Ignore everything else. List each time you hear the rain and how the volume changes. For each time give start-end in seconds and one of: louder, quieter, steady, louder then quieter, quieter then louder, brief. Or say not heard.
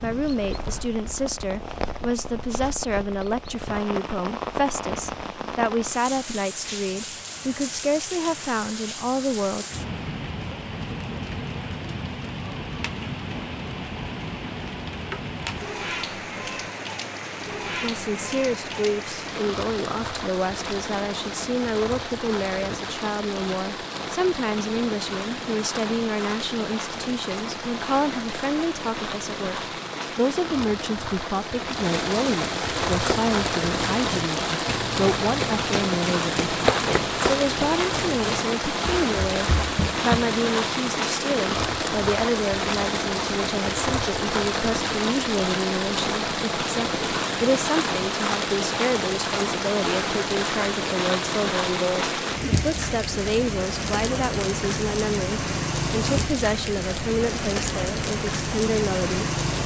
0.0-59.6 louder.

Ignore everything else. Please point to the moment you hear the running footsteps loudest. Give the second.
37 s.